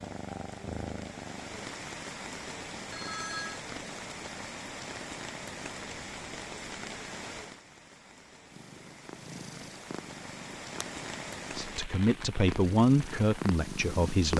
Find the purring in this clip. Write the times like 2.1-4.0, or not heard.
0.0-1.8, 8.5-14.3.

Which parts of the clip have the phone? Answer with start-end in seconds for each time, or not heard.
2.9-3.6.